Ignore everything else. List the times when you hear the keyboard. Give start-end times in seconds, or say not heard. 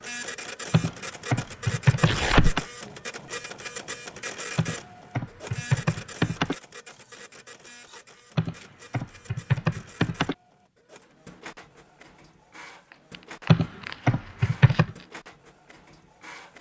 0.7-2.6, 4.5-6.5, 8.3-10.3, 13.4-14.9.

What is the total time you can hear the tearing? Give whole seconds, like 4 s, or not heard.
5 s.